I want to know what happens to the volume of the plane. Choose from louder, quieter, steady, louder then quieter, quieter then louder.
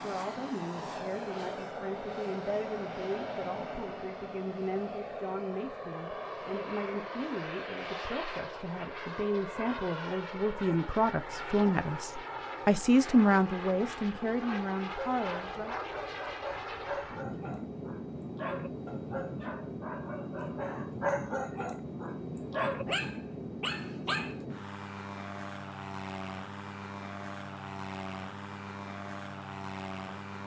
steady.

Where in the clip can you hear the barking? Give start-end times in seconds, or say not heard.
14.9-24.4.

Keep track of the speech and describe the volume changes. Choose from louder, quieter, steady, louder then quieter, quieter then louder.
louder.